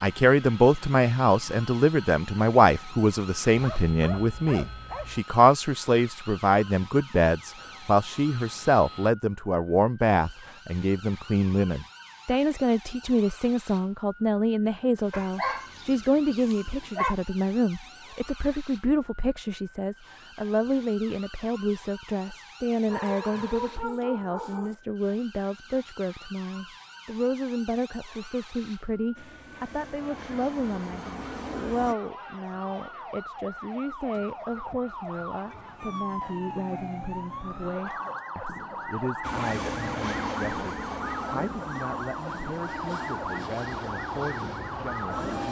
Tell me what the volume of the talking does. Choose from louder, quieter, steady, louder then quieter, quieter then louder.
quieter.